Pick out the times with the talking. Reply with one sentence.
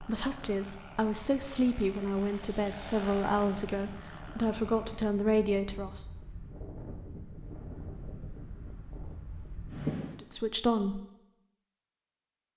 You can hear the talking from 0.0 to 6.0 s and from 10.2 to 11.0 s.